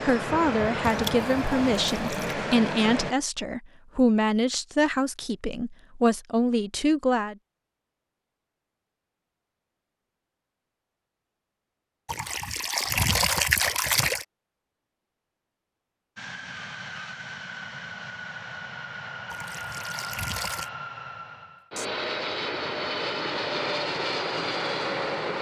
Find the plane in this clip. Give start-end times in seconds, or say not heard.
0.0-3.1, 16.1-25.3.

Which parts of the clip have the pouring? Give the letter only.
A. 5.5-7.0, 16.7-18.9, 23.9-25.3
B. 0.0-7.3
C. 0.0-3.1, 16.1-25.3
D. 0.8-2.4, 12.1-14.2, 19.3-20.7
D.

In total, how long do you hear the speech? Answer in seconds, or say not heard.
7 s.